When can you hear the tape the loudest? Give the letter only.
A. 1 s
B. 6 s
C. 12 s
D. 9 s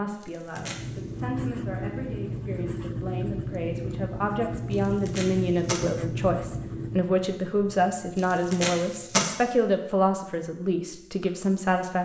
D.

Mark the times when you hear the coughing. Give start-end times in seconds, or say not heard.
not heard.